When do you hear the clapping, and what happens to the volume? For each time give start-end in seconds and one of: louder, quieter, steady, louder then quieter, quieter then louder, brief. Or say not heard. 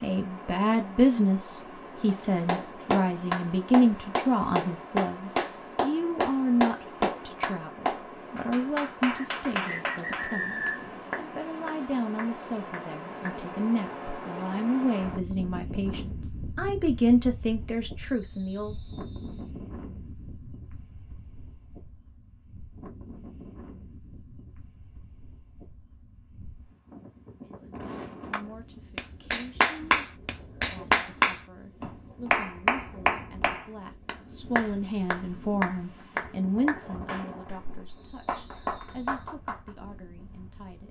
2.0-13.4 quieter
28.3-39.7 quieter.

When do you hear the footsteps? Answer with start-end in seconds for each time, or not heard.
not heard.